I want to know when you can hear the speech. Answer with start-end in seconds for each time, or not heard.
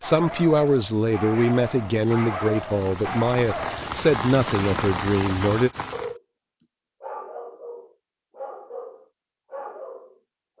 0.0-5.7.